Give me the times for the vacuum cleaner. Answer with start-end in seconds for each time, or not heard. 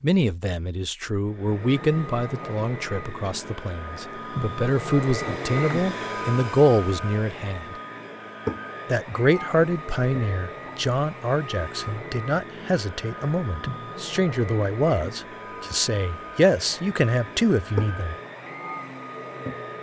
1.2-19.7.